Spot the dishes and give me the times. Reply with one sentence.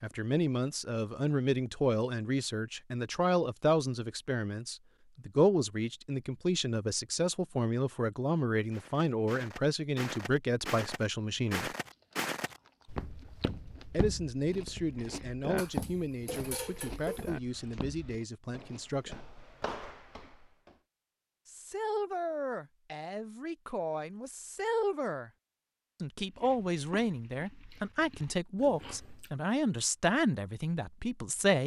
The dishes can be heard from 15.6 to 17.4 s.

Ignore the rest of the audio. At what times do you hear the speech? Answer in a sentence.
The speech can be heard from 0.0 to 11.7 s, from 13.9 to 19.2 s, from 21.4 to 25.3 s and from 26.0 to 31.6 s.